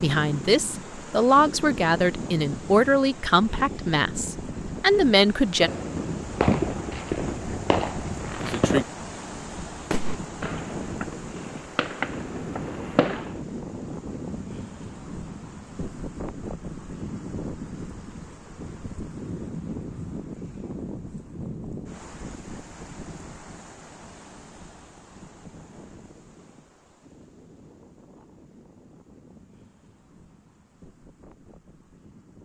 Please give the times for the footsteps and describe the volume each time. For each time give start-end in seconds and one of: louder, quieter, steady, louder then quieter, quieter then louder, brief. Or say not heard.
not heard.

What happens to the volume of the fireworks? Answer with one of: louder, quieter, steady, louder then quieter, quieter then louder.
quieter.